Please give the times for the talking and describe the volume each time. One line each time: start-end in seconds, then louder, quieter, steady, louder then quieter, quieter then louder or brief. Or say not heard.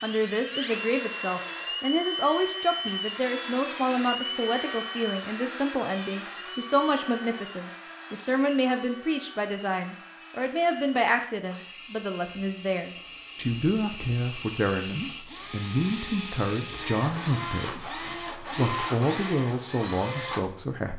0.0-20.9 steady.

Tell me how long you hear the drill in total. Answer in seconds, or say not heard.
21 s.